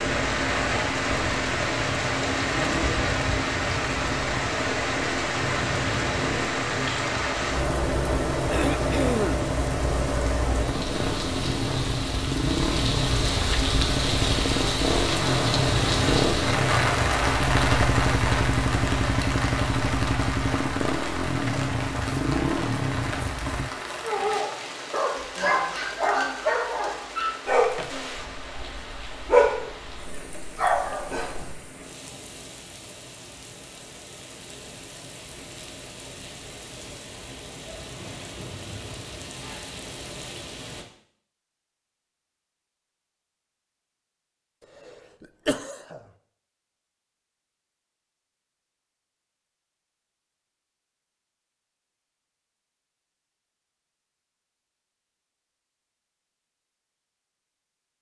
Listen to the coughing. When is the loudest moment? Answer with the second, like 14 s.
9 s.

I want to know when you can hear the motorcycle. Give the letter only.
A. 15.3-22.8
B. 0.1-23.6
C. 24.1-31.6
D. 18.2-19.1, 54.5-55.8
B.